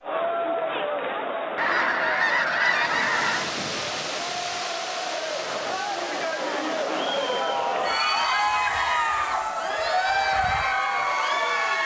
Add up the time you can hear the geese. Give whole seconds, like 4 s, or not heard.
2 s.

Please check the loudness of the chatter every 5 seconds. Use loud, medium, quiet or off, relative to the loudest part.
medium, loud, loud.